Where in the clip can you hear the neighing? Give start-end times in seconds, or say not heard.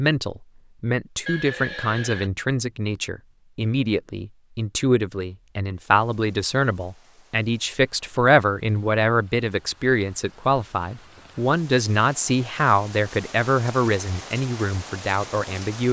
1.2-2.3.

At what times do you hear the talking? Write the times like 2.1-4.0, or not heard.
0.0-15.8.